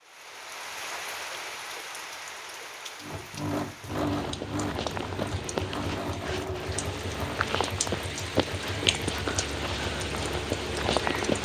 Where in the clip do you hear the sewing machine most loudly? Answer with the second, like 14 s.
4 s.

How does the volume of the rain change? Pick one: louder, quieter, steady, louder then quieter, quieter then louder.
quieter then louder.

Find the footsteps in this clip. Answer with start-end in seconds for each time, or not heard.
3.9-11.3.